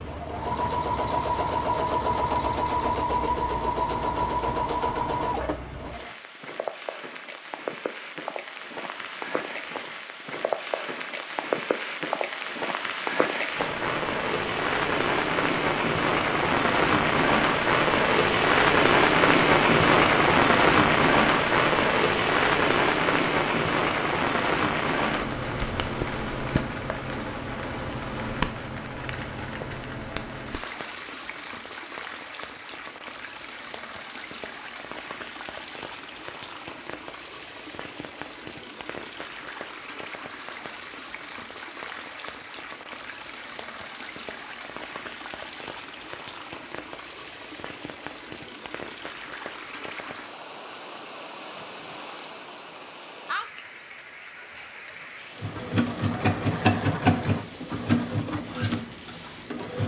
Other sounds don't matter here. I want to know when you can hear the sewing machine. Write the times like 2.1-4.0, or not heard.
0.1-6.1, 55.4-59.8.